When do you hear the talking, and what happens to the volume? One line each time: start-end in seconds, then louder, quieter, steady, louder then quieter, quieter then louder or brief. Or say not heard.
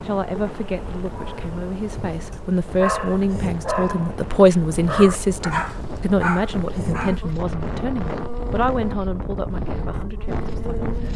0.0-10.9 louder then quieter.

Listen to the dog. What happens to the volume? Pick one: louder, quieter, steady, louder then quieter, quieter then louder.
louder.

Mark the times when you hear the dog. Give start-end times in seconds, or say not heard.
1.1-7.2.